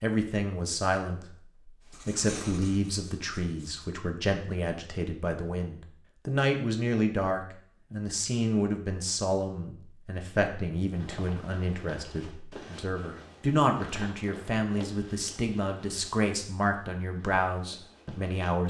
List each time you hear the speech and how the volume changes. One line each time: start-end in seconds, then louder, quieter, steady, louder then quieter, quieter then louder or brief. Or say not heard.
0.0-18.6 steady.